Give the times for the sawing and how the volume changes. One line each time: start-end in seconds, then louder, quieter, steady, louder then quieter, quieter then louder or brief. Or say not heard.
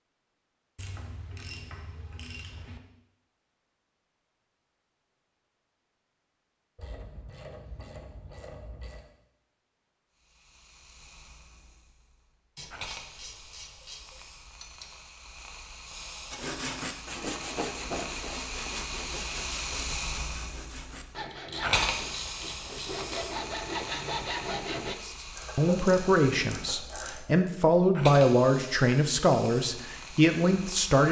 16.3-24.9 quieter then louder.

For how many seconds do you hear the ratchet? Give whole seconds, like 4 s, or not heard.
11 s.